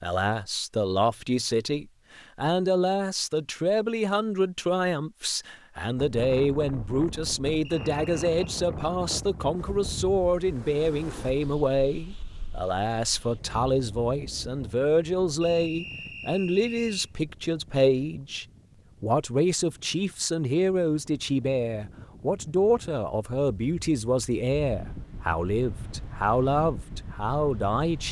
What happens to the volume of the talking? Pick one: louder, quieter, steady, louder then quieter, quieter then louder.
steady.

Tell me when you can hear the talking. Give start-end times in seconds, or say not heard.
0.0-28.0.